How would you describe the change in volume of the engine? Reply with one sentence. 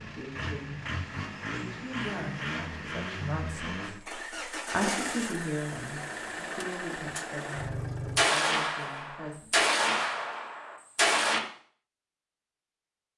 The loudness of the engine stays about the same.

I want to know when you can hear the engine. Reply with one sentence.
You can hear the engine from 0.0 to 8.2 s.